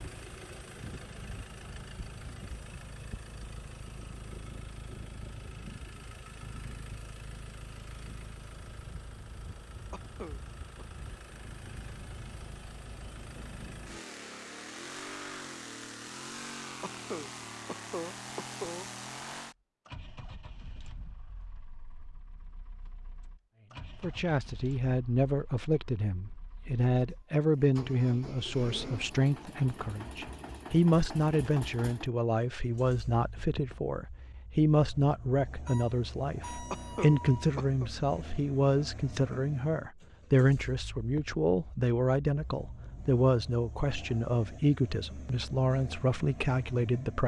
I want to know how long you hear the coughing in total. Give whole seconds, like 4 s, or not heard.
4 s.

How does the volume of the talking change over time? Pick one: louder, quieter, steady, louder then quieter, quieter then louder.
steady.